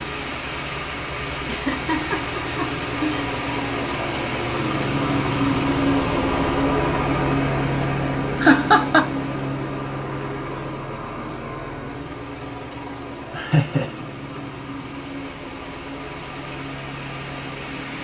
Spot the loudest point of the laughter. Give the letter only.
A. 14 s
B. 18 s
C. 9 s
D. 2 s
C.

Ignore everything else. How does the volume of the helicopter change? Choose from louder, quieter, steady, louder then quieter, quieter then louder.
louder then quieter.